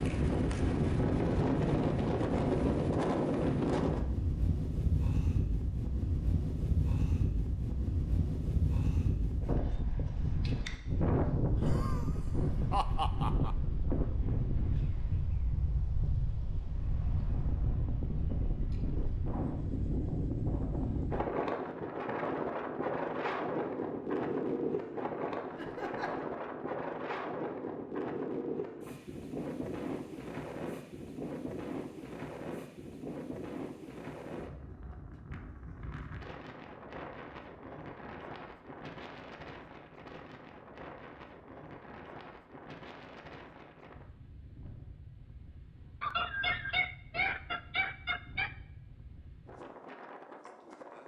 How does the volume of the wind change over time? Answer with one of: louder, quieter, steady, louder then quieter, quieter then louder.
quieter.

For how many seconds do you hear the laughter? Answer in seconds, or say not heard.
5 s.